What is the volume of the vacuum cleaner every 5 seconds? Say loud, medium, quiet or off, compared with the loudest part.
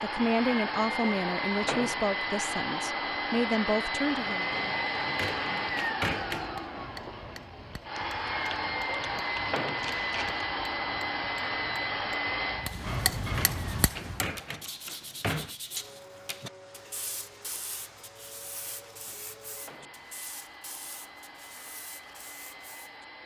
loud, loud, loud, quiet, quiet.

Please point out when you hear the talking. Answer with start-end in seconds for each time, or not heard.
0.0-4.5.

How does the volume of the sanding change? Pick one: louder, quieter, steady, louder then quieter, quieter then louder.
quieter.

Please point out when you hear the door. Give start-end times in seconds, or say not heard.
5.0-6.5, 13.2-15.6.